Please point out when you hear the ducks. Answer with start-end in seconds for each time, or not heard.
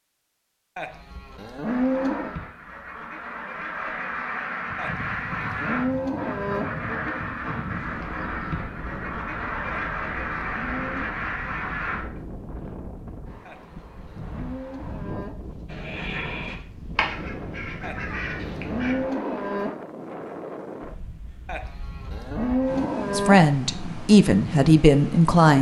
1.6-12.2, 15.7-18.9.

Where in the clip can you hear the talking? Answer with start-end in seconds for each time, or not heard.
23.1-25.5.